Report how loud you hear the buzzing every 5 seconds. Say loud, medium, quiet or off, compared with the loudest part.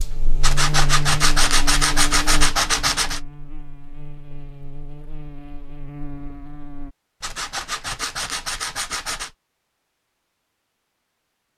loud, medium, off.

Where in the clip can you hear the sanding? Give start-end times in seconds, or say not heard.
0.4-3.2, 7.2-9.3.